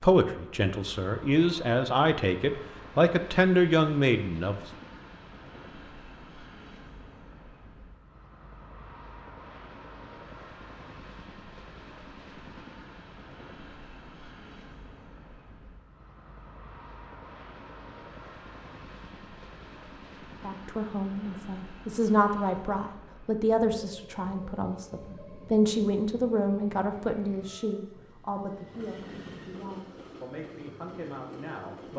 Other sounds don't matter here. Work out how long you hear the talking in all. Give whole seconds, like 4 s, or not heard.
16 s.